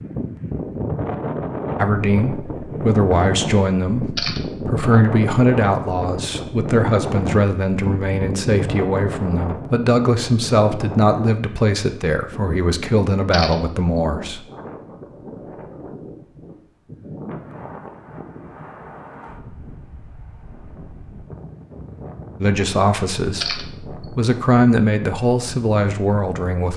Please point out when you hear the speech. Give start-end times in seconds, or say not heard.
1.8-14.4, 22.4-26.7.